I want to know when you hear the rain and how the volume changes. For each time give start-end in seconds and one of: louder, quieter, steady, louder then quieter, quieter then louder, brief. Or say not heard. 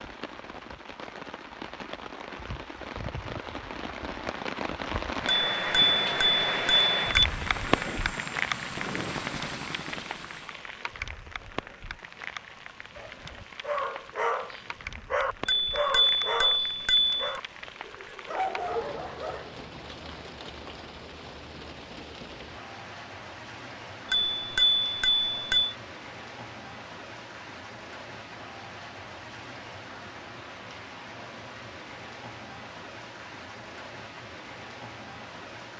0.0-35.7 quieter.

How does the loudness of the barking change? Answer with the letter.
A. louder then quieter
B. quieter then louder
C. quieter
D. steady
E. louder
B.